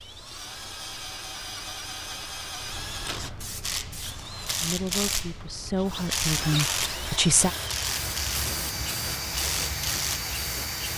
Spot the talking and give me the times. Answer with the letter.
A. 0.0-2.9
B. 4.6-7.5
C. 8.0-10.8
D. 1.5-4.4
B.